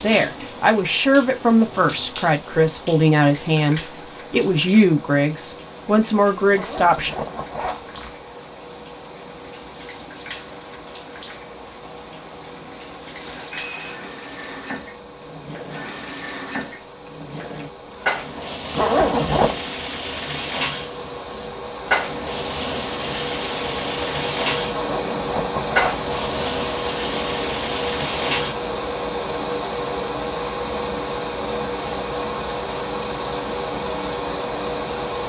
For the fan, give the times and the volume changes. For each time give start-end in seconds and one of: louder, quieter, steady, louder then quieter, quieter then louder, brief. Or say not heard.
0.2-35.2 louder.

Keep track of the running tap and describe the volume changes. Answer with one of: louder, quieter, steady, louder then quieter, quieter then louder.
louder.